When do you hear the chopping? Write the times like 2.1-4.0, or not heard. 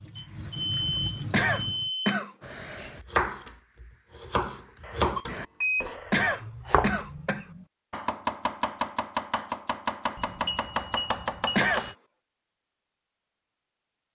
2.4-11.9.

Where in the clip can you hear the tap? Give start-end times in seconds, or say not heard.
0.0-1.9.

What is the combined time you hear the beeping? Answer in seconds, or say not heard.
5 s.